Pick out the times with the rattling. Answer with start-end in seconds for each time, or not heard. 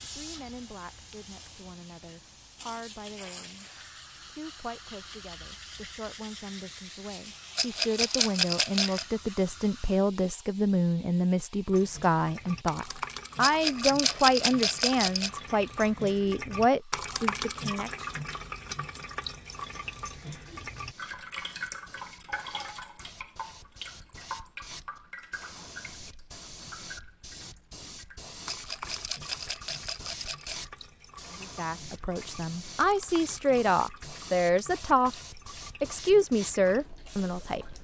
7.5-9.1, 13.4-15.3, 28.4-30.6.